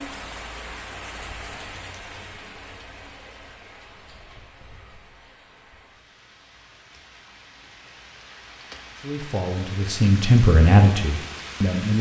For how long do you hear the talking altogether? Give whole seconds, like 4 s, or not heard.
3 s.